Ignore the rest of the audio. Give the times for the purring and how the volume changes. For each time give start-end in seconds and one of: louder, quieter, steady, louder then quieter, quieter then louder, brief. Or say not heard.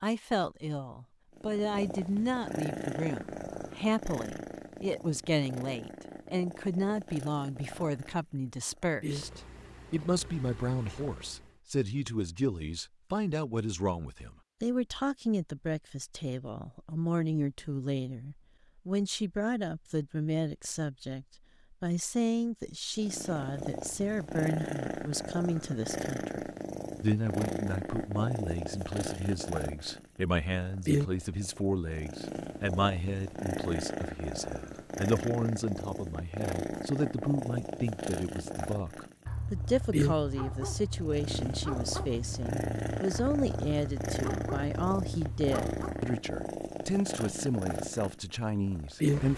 1.4-11.6 quieter
22.9-49.3 steady.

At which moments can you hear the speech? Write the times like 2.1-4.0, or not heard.
0.0-49.3.